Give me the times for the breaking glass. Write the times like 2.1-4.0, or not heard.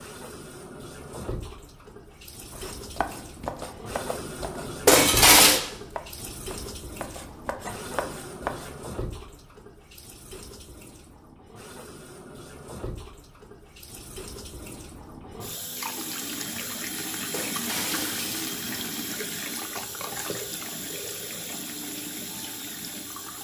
4.8-5.6, 17.3-18.5.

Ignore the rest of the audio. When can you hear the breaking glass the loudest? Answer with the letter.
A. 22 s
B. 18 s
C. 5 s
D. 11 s
C.